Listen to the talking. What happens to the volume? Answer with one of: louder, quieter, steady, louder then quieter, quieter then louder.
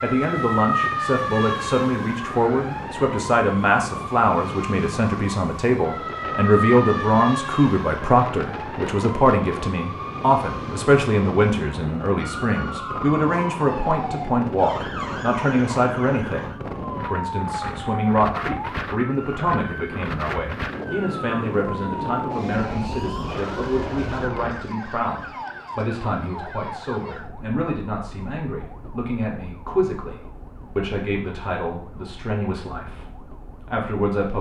quieter.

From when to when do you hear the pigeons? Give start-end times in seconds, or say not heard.
not heard.